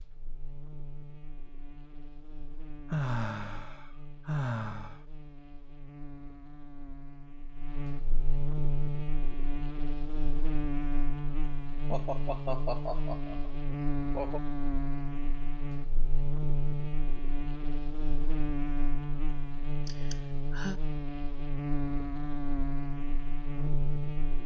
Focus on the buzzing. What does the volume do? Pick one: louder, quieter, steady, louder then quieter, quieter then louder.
louder.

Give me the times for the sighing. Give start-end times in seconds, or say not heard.
2.9-5.0, 11.9-14.4, 19.9-20.8.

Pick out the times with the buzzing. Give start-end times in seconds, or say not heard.
0.0-24.4.